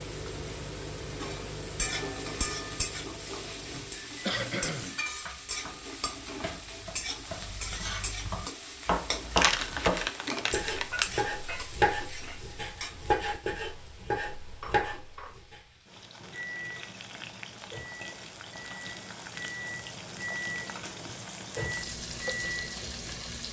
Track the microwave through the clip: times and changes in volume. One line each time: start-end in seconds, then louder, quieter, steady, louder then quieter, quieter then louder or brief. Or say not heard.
0.0-4.7 quieter
16.2-23.4 louder.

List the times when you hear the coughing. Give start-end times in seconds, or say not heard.
3.8-5.0.